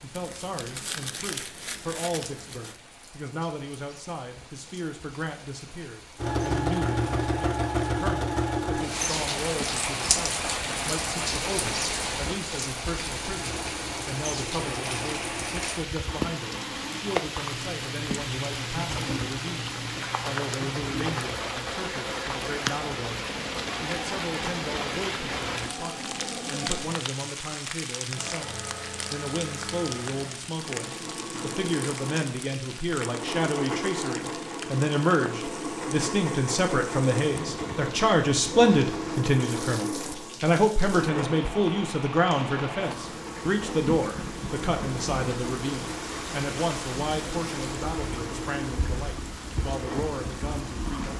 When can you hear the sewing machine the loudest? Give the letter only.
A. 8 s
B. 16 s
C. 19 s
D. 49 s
A.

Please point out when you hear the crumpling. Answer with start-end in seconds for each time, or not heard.
0.1-2.8.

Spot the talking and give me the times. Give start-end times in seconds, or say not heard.
0.0-51.1.